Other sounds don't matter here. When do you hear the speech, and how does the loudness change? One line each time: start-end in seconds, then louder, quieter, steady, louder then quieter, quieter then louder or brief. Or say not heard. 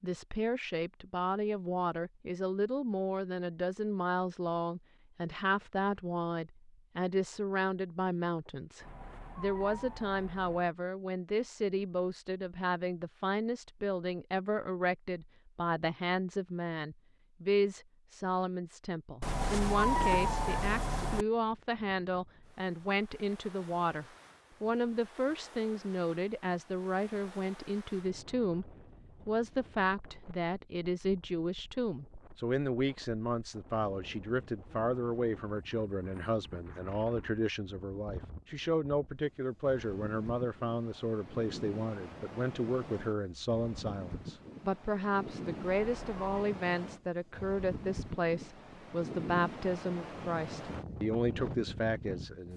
0.0-52.5 steady.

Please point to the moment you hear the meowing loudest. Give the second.
20 s.